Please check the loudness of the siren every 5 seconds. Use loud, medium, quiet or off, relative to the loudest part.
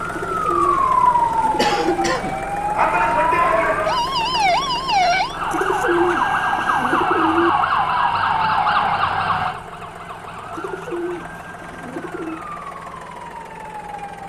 loud, loud, quiet.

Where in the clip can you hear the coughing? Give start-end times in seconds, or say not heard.
1.6-2.5.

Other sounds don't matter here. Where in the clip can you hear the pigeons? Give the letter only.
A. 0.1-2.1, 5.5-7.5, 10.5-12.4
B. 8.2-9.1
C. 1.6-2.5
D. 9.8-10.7
A.